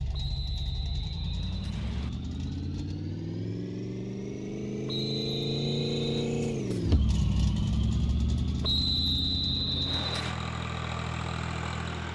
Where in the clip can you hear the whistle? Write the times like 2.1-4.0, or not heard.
0.1-2.1, 4.8-6.3, 8.6-10.3.